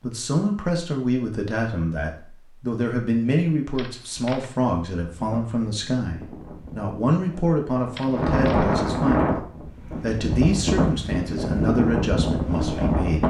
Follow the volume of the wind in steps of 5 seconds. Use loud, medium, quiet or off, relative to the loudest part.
off, loud, loud.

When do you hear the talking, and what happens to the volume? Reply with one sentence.
You can hear the talking from 0.0 to 13.2 s, at a steady volume.